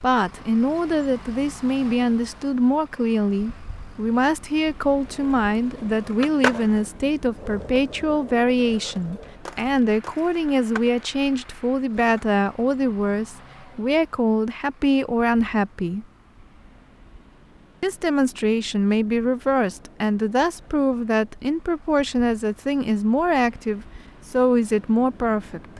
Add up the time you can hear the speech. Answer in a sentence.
The speech can be heard for 24 seconds in total.